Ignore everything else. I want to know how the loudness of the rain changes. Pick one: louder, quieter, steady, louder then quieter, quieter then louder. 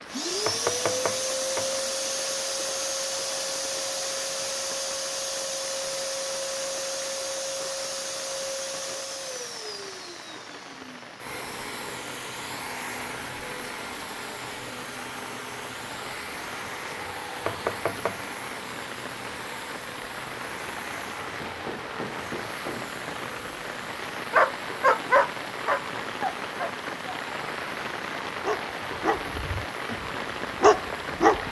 louder.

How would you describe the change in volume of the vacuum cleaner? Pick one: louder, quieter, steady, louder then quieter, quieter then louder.
quieter.